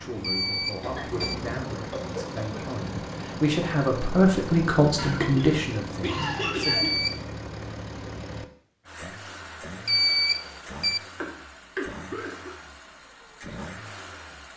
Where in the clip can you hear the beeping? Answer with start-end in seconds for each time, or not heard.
0.2-1.4, 6.6-7.2, 9.8-11.0.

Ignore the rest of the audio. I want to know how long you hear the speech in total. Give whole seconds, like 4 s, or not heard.
7 s.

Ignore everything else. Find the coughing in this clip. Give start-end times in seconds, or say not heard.
0.8-2.6, 5.0-6.9, 11.2-12.6.